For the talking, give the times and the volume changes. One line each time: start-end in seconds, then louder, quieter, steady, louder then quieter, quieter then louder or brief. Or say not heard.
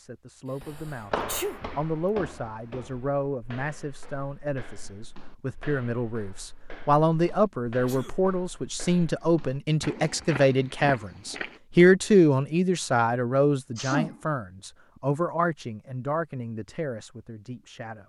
0.0-18.0 louder then quieter.